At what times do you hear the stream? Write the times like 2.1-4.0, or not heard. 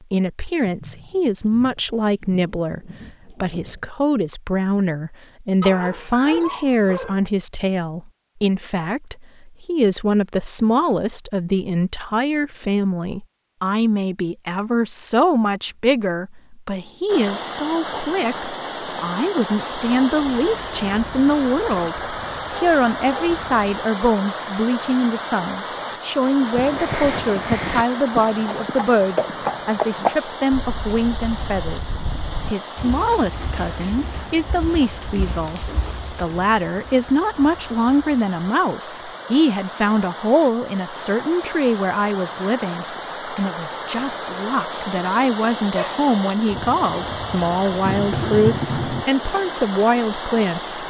17.1-50.8.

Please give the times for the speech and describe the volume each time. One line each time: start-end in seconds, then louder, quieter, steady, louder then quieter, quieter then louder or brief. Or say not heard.
0.1-50.8 steady.